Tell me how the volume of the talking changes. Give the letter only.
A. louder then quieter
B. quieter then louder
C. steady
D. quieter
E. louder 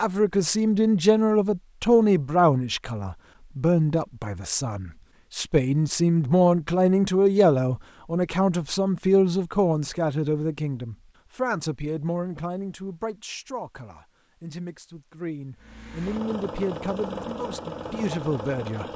D.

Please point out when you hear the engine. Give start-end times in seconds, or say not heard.
15.6-18.9.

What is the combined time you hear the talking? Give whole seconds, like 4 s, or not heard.
19 s.